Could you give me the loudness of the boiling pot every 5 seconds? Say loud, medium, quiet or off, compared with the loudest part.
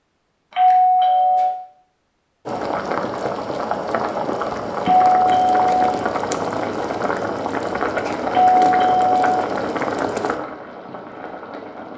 loud, loud, medium.